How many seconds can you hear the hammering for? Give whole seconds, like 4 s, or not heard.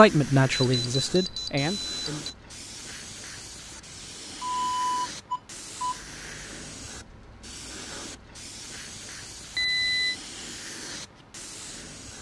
not heard.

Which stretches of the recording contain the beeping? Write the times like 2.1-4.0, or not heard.
0.5-2.4, 4.4-6.0, 9.6-10.2.